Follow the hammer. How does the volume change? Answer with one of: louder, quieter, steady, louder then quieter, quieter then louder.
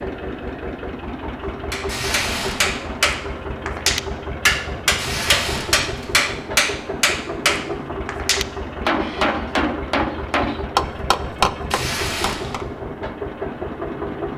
steady.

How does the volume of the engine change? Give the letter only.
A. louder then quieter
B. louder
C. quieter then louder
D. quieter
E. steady
E.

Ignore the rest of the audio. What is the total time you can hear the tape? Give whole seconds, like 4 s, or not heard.
3 s.